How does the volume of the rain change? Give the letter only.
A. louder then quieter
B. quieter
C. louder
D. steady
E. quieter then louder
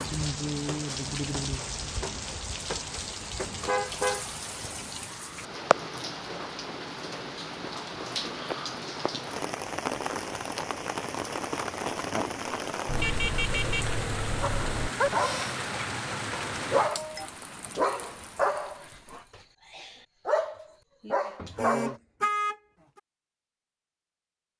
D.